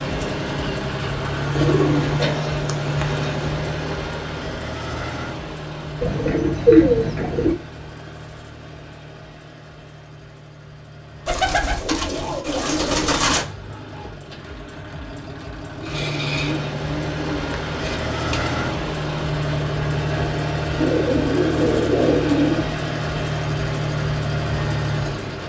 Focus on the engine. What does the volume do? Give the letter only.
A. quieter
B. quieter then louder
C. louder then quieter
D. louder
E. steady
B.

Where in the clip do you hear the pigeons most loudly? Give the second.
7 s.